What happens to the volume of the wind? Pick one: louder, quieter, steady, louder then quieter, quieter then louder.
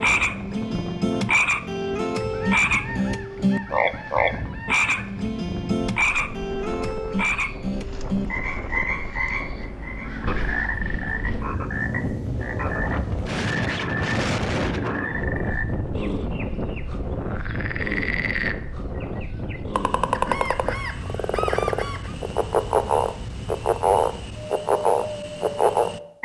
louder then quieter.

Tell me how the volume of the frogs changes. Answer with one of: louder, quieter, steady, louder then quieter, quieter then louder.
quieter then louder.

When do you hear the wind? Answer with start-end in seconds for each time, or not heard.
0.0-26.2.